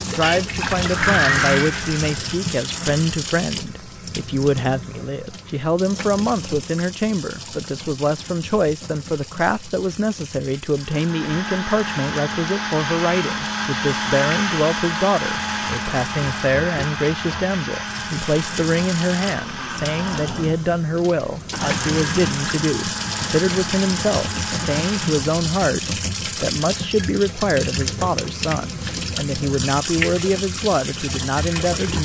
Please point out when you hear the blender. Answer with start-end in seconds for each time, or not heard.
0.0-3.2, 10.8-25.4.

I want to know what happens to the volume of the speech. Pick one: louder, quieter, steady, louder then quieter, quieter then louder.
steady.